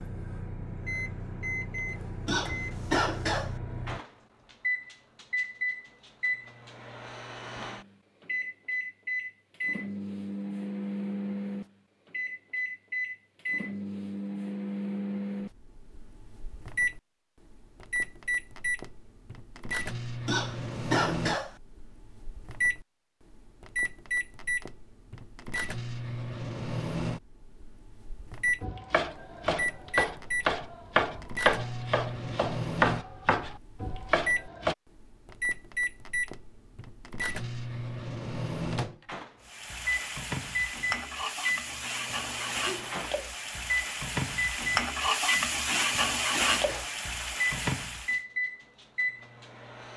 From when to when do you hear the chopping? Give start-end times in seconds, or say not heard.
28.6-34.8.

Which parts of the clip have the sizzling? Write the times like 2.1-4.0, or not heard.
39.5-48.2.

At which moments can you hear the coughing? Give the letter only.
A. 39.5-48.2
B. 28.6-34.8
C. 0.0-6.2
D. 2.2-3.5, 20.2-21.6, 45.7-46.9
D.